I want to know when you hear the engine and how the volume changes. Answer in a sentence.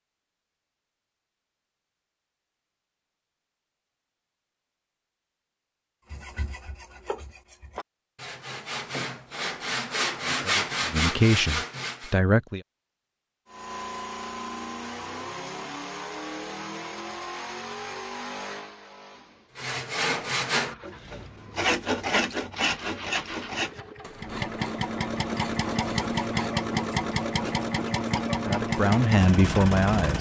The engine can be heard from 13.4 to 30.1 s, getting quieter then louder.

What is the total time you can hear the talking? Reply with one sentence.
The talking can be heard for 4 seconds in total.